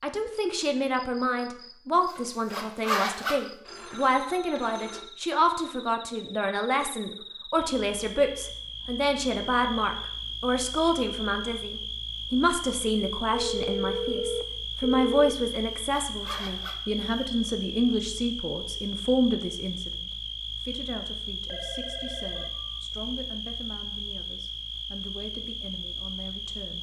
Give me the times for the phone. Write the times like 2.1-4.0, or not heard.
3.6-5.2, 13.3-15.3, 21.4-22.8.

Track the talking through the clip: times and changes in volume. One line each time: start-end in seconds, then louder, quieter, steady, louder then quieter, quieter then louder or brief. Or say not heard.
0.0-26.7 quieter.